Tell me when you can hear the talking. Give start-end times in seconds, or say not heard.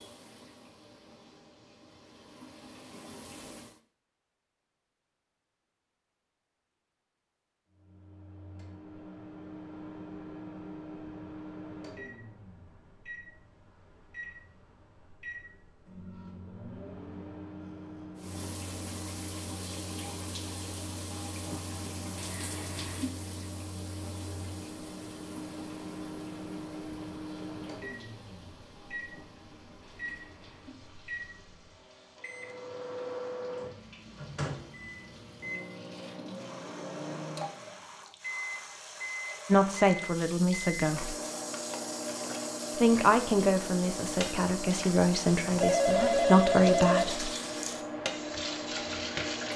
39.5-41.1, 42.8-47.3.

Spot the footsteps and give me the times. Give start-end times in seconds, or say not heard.
not heard.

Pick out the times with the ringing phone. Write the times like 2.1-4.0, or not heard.
45.6-47.0.